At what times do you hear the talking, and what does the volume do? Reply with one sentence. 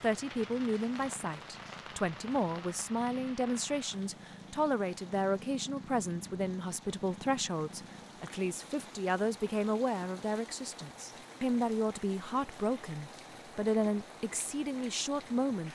The talking can be heard from 0.0 to 15.6 s, at a steady volume.